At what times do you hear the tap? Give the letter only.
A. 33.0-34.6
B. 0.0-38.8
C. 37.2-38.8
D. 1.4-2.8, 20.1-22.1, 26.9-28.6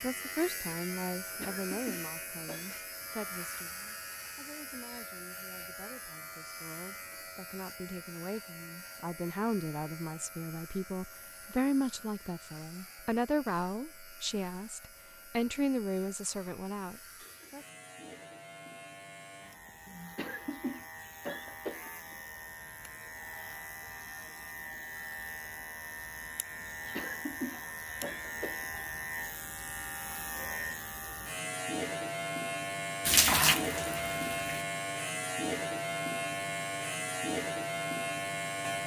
A.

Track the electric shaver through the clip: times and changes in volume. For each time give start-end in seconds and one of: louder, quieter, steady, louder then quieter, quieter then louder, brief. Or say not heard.
0.0-38.8 quieter then louder.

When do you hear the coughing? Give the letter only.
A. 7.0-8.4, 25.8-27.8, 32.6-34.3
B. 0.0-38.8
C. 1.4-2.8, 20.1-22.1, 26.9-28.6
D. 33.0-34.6
C.